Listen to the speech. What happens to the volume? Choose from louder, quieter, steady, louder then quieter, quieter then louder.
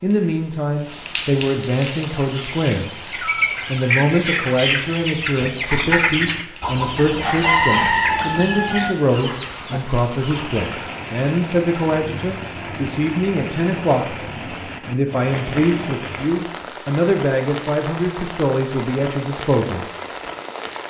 steady.